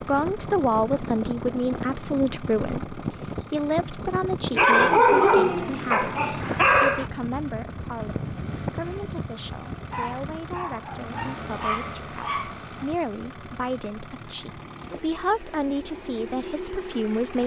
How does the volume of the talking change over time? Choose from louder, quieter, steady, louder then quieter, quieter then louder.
quieter then louder.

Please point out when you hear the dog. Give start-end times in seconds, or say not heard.
4.5-7.0, 9.9-12.7.